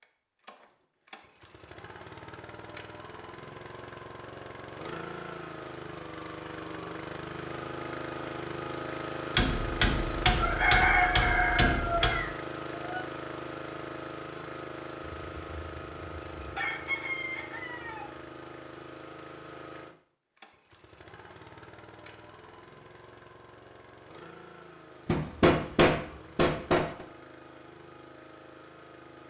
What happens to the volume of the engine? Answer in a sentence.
The loudness of the engine goes up, then down.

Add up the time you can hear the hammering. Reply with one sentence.
The hammering can be heard for 5 seconds in total.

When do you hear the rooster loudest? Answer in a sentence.
The loudest moment of the rooster is at 11 seconds.